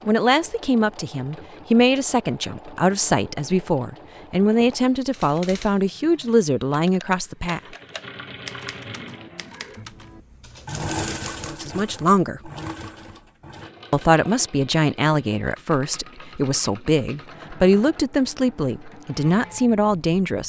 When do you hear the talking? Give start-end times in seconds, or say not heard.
0.1-7.6, 11.4-12.5, 13.9-20.4.